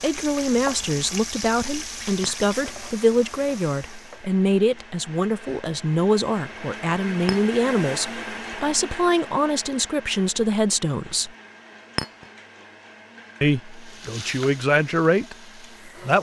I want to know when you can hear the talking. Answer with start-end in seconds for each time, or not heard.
0.0-11.3, 13.4-16.1.